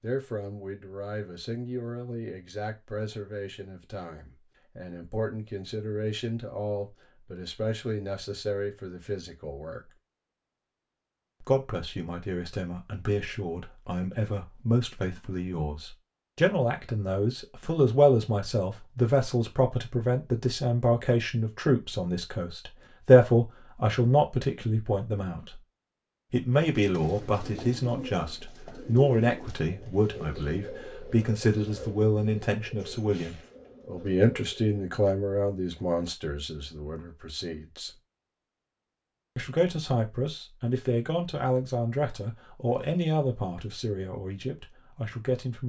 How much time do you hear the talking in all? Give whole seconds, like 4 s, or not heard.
42 s.